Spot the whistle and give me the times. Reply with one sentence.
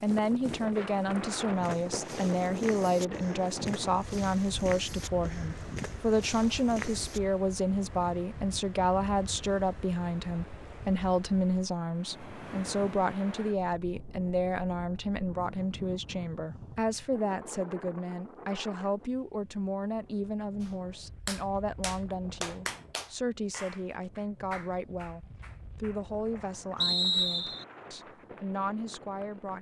The whistle can be heard from 26.8 to 27.6 s.